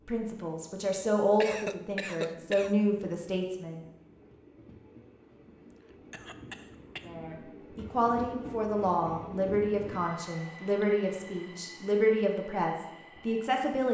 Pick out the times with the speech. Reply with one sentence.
The speech can be heard from 0.1 to 3.8 s and from 7.0 to 13.9 s.